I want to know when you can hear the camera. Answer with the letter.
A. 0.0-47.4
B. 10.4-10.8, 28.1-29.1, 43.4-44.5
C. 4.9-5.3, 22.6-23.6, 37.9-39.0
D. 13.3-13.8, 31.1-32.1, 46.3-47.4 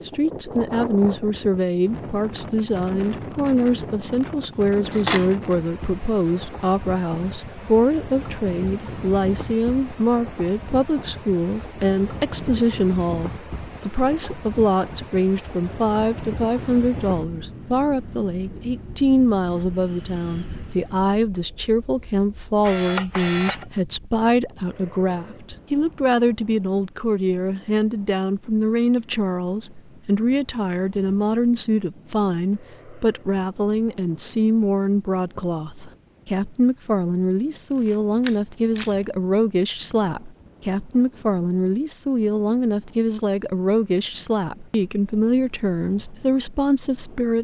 C.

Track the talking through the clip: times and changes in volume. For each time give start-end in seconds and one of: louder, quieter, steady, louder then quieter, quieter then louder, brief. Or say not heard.
0.0-47.4 steady.